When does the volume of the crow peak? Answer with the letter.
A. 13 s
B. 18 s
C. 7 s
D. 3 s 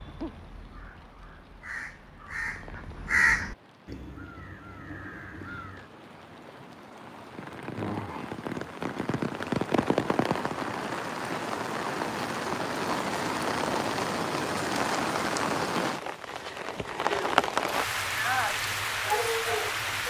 D.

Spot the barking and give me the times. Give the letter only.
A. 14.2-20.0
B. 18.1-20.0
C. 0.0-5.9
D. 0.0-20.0
B.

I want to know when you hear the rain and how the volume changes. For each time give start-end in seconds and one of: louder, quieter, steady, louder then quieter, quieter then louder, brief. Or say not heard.
0.0-20.0 louder.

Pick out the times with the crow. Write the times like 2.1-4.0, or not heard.
0.0-5.9.